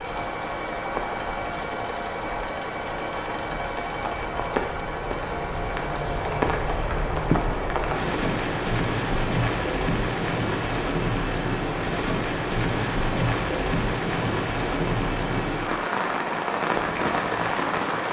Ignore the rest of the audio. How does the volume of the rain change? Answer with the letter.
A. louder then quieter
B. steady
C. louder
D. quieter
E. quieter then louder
C.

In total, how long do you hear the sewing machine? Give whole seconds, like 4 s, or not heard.
18 s.